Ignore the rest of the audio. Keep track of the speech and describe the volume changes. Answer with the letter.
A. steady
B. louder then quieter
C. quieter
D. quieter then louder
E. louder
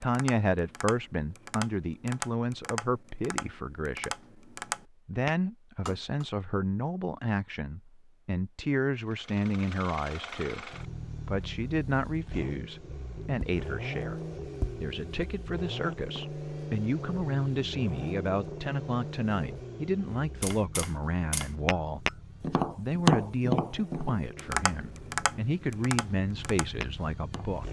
A.